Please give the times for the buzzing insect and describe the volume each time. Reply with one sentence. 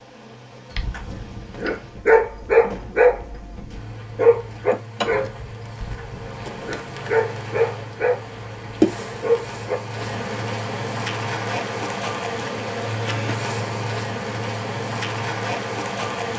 You can hear the buzzing insect from 0.0 to 16.3 s, getting louder.